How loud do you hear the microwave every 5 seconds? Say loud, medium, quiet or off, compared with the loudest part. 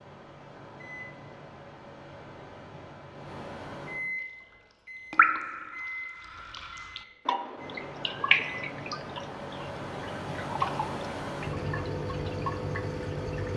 medium, medium, loud.